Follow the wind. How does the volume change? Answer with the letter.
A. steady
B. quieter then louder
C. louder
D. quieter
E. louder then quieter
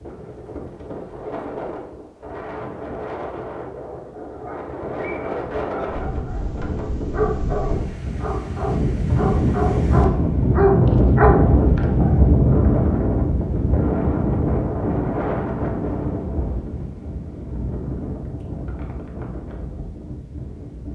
E.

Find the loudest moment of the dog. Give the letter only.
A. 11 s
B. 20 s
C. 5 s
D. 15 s
A.